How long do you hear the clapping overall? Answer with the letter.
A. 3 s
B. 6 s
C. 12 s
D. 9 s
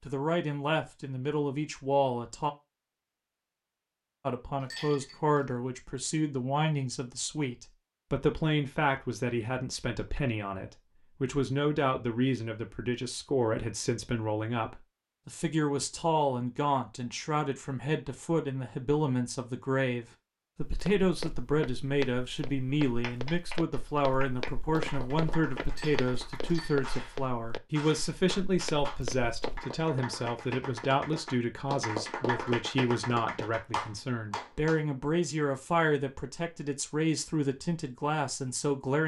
C.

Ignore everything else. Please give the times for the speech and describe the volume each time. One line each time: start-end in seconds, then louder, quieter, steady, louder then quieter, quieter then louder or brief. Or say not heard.
0.0-2.5 brief
4.2-39.0 steady.